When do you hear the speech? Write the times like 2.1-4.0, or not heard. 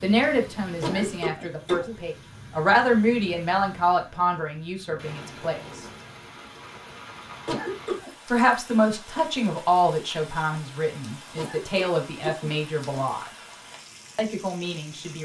0.0-5.8, 8.3-13.3, 14.2-15.2.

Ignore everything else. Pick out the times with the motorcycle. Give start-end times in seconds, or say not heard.
not heard.